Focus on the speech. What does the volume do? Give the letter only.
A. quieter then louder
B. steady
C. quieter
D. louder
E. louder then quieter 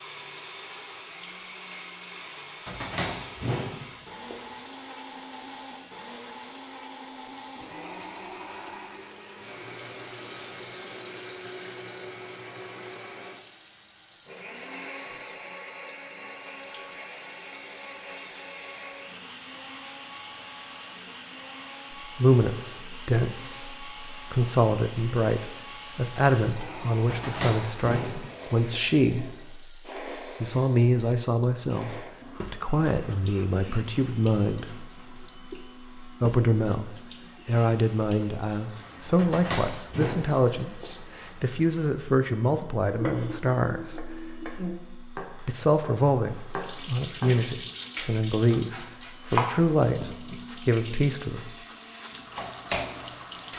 B.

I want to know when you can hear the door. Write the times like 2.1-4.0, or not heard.
2.6-4.3, 27.1-28.8, 39.1-40.9.